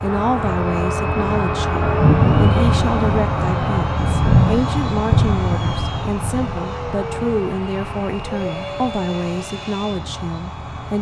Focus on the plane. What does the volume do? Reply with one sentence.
The loudness of the plane goes down.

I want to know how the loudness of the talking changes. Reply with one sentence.
The loudness of the talking stays about the same.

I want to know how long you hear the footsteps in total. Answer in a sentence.
You can't hear the footsteps here.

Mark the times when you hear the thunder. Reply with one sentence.
You can hear the thunder from 1.8 to 6.5 s.